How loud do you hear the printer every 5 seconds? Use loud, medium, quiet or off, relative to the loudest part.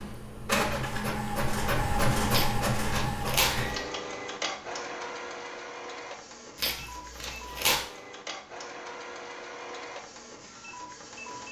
loud, medium, quiet.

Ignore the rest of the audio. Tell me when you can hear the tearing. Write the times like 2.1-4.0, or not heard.
2.3-3.8, 6.5-7.8.